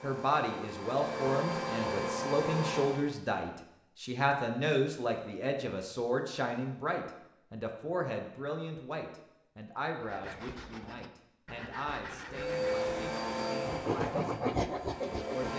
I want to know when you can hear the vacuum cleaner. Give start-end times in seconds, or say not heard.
0.0-3.0, 12.2-15.5.